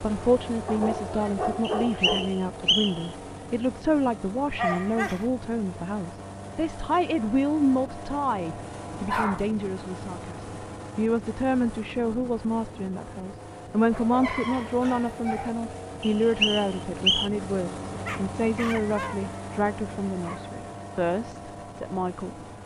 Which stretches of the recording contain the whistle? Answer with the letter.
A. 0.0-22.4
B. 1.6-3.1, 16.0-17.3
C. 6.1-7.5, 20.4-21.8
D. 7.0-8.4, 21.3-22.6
B.